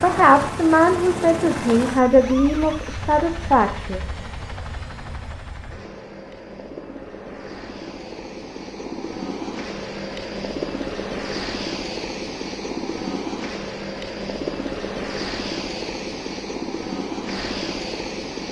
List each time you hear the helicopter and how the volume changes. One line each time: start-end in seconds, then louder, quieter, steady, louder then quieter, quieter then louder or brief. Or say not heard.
0.0-18.4 quieter then louder.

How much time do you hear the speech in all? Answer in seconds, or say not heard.
4 s.